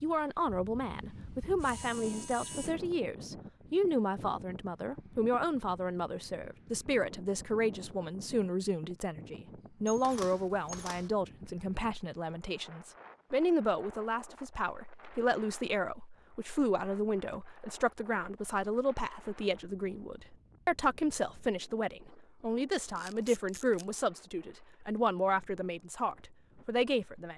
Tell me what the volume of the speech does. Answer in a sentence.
The volume of the speech stays about the same.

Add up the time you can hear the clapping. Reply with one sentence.
The clapping can't be heard in this clip.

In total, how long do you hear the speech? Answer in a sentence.
You can hear the speech for 27 seconds altogether.